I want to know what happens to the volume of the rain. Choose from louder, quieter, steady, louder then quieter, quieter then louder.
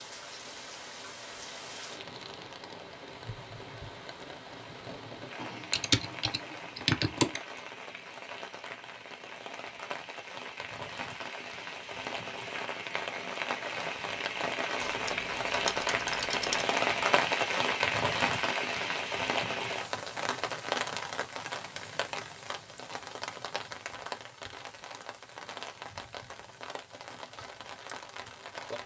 louder then quieter.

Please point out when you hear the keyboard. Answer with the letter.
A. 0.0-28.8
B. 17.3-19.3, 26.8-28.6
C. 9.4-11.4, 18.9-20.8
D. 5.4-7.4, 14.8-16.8
D.